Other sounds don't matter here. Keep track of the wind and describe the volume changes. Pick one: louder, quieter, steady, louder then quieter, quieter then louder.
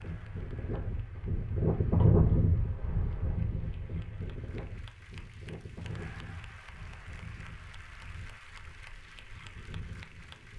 quieter.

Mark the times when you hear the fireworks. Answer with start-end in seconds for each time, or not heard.
not heard.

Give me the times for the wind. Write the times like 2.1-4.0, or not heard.
0.0-10.5.